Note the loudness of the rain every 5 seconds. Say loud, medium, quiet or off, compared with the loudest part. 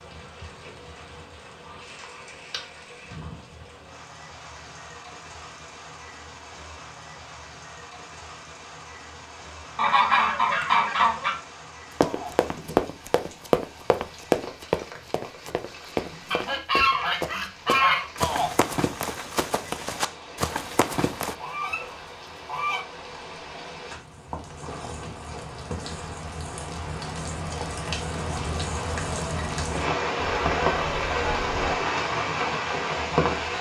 quiet, quiet, quiet, quiet, quiet, medium, loud.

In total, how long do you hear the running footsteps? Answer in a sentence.
The running footsteps can be heard for 9 seconds in total.